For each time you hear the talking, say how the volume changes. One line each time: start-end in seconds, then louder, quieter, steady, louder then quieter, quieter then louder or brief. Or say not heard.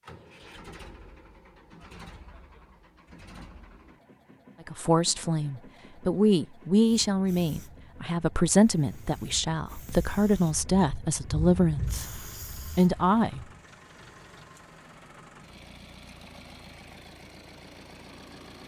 4.7-13.4 steady.